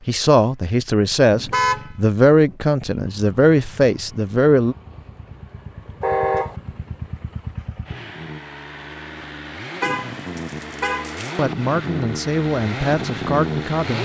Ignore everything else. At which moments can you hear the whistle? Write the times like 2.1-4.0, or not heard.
not heard.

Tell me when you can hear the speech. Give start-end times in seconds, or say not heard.
0.1-4.8, 11.3-13.9.